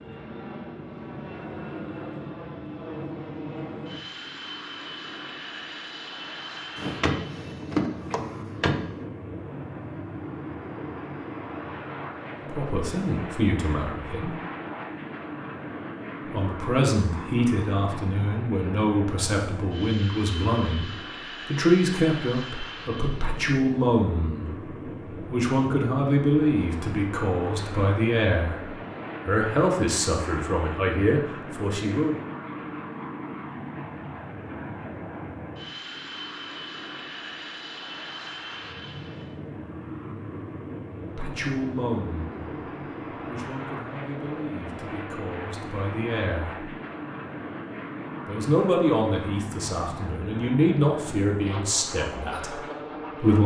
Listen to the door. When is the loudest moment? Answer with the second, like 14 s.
8 s.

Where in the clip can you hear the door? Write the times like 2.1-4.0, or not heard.
6.8-9.0.